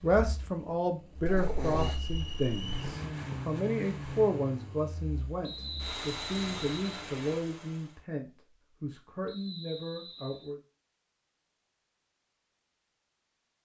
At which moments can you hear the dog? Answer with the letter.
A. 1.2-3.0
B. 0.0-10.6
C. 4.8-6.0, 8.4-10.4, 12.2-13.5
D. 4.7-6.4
A.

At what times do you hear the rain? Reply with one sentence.
The rain can't be heard in this clip.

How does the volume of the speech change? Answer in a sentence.
The loudness of the speech goes down.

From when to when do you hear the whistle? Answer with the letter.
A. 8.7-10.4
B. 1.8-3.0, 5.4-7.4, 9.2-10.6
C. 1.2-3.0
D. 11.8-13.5
B.